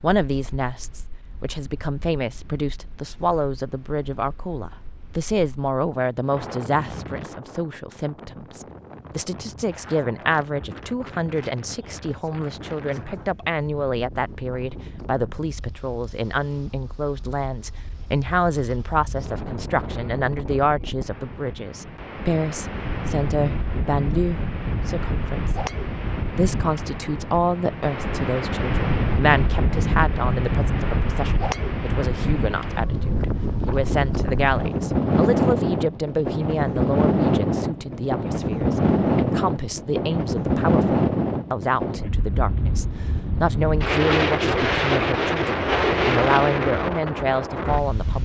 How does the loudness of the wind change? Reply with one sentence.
The loudness of the wind goes up.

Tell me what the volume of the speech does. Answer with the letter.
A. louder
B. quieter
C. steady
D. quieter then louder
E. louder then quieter
C.